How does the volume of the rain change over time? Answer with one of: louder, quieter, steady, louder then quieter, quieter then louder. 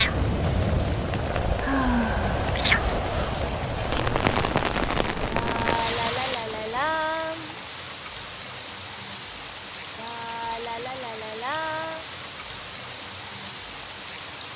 quieter.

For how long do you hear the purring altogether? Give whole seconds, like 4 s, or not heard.
7 s.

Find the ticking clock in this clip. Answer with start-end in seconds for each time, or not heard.
not heard.